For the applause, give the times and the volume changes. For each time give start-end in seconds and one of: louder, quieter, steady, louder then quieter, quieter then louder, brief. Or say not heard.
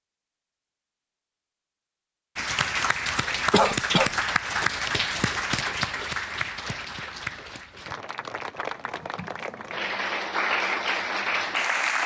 2.4-12.0 quieter then louder.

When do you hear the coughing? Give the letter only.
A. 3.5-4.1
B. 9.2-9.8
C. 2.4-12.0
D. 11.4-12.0
A.